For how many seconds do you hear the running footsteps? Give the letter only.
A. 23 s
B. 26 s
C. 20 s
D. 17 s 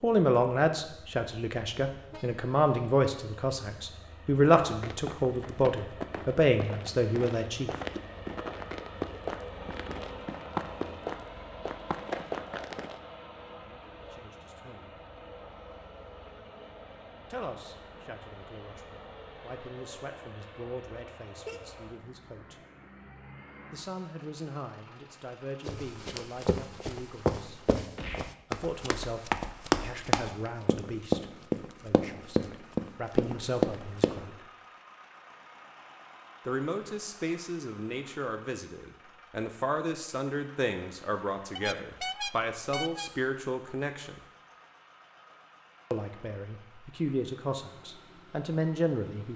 D.